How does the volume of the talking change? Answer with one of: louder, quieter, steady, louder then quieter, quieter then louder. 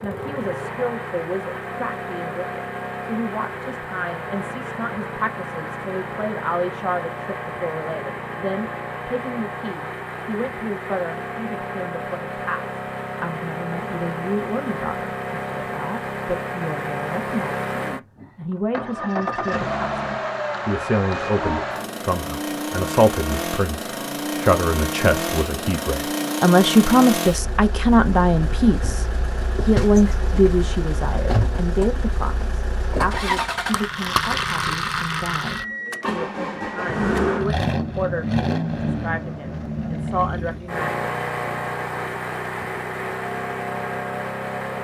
louder then quieter.